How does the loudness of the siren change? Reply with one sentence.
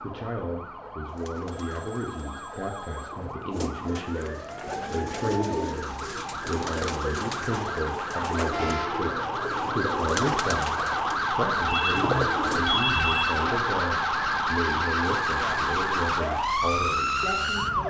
The volume of the siren goes up.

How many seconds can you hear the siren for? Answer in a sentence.
You can hear the siren for 18 seconds altogether.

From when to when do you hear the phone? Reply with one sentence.
The phone can be heard from 1.5 to 3.1 s and from 11.7 to 13.4 s.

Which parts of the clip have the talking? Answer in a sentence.
You can hear the talking from 0.0 to 17.8 s.